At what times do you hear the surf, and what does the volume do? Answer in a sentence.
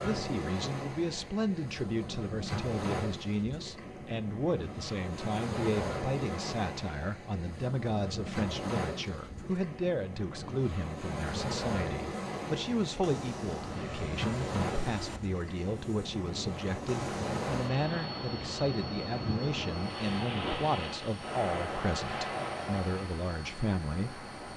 You can hear the surf from 0.0 to 24.5 s, at a steady volume.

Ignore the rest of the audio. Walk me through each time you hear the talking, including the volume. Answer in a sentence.
You can hear the talking from 0.0 to 24.2 s, at a steady volume.